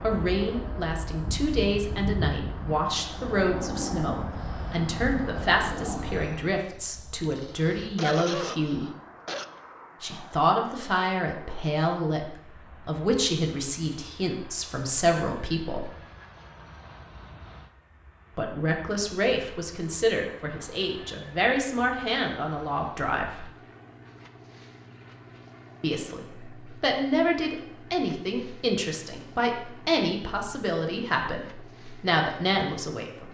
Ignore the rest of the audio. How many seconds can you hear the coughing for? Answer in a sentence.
The coughing can be heard for 2 seconds in total.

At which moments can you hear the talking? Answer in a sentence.
You can hear the talking from 0.0 to 8.9 s, from 10.0 to 15.9 s, from 18.4 to 23.4 s and from 25.8 to 33.2 s.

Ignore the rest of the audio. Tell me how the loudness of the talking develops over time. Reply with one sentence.
The volume of the talking stays about the same.